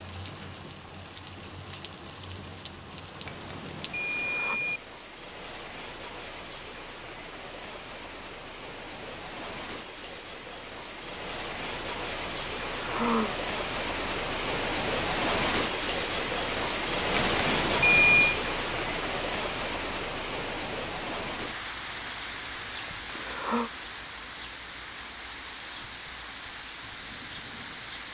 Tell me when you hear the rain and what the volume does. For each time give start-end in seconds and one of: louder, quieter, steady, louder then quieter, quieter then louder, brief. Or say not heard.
0.0-28.0 louder then quieter.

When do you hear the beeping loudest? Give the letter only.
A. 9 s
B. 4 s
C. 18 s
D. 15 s
C.